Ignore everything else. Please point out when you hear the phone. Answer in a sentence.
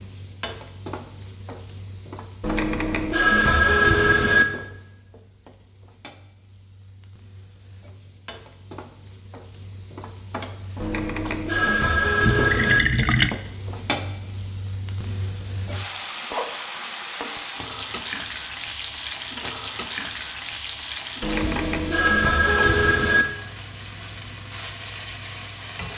The phone can be heard from 2.4 to 4.5 s, from 10.8 to 12.8 s and from 21.2 to 23.2 s.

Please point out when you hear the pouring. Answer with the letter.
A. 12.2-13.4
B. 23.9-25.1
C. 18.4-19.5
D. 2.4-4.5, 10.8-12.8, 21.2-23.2
A.